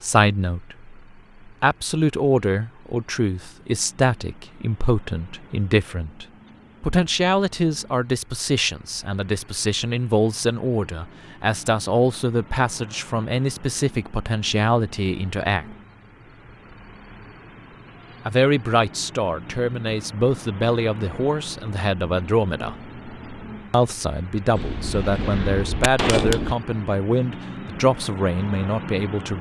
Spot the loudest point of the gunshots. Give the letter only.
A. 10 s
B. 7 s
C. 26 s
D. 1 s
C.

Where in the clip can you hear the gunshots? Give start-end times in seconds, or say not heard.
24.6-26.6.